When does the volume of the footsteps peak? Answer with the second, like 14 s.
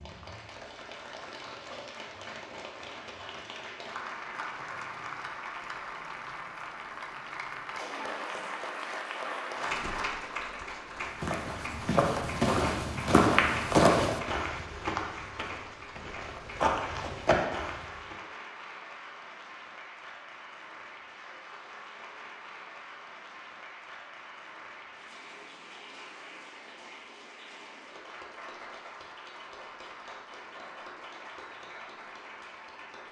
14 s.